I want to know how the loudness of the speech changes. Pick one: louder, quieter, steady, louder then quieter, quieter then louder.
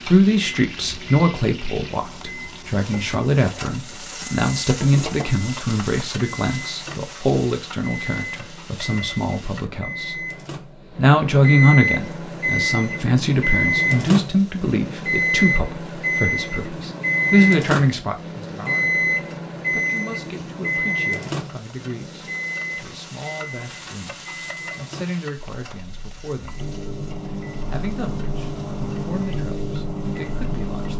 quieter.